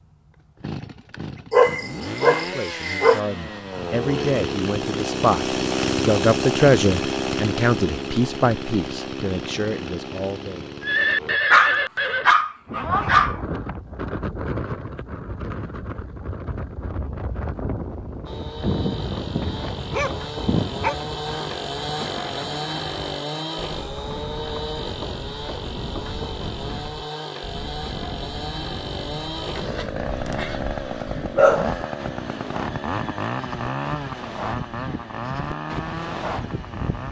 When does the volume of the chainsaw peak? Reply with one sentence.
The loudest moment of the chainsaw is at 6 seconds.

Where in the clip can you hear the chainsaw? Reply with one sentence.
The chainsaw can be heard from 0.0 to 11.4 s and from 18.2 to 37.0 s.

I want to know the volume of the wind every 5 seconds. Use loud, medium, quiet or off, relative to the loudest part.
off, off, loud, loud, medium, medium, medium, loud.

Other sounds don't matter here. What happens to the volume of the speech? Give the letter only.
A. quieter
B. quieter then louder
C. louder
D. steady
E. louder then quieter
E.